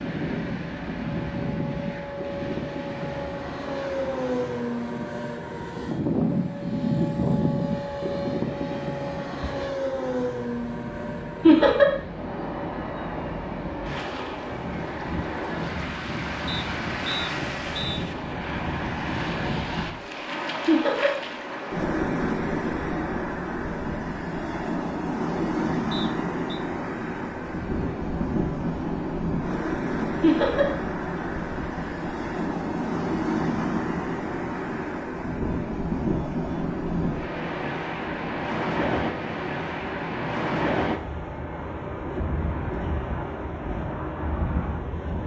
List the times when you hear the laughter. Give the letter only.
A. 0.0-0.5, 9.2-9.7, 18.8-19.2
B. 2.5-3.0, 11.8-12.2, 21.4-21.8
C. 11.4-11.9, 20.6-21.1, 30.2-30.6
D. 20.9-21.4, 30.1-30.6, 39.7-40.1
C.